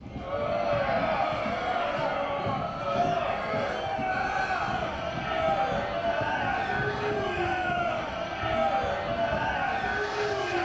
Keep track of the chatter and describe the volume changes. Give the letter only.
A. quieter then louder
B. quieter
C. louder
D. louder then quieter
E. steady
E.